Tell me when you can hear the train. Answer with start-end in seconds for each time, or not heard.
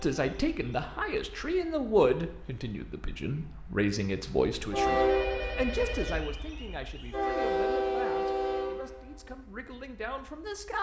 0.0-10.7.